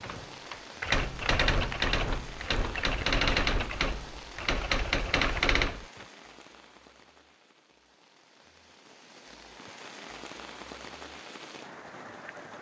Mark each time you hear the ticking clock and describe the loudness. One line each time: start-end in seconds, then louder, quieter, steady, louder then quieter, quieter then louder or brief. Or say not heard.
not heard.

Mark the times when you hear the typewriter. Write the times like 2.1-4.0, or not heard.
0.0-6.0.